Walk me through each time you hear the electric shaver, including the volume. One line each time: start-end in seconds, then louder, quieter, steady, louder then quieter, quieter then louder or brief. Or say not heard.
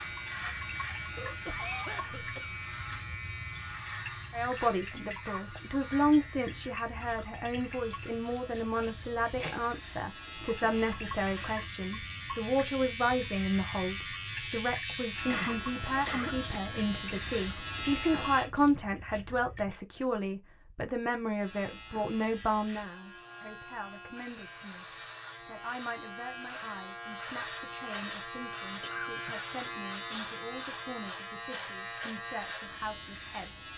0.0-18.5 quieter then louder
21.4-33.7 louder.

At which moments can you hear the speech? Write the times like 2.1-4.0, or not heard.
4.3-24.9, 25.4-33.6.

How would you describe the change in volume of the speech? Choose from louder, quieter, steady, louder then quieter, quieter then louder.
quieter.